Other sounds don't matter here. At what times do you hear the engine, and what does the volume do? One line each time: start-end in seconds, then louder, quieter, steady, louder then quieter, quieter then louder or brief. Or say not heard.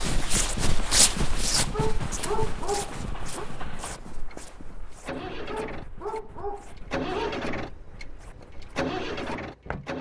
0.0-9.9 louder.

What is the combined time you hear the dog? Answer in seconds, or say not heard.
4 s.